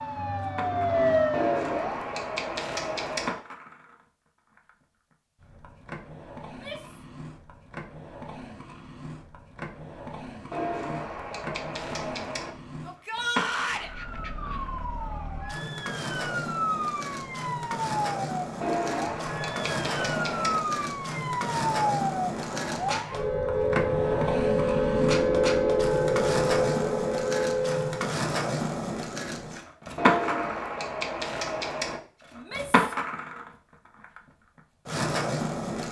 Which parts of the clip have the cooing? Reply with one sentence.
You can hear the cooing from 1.3 to 3.4 s, from 10.5 to 12.5 s, from 18.6 to 20.6 s and from 29.9 to 32.0 s.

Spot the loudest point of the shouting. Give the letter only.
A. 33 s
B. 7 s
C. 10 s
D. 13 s
D.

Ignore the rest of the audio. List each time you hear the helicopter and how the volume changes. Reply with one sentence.
You can't hear the helicopter here.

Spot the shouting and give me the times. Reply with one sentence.
The shouting can be heard from 6.5 to 7.0 s, from 12.8 to 13.9 s and from 32.4 to 33.0 s.